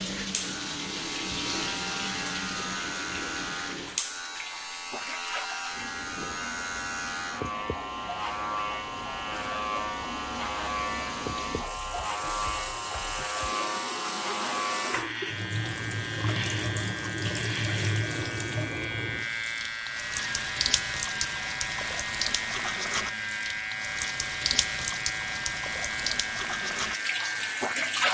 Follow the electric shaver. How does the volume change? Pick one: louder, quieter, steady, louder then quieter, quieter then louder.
steady.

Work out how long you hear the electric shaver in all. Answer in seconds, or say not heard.
28 s.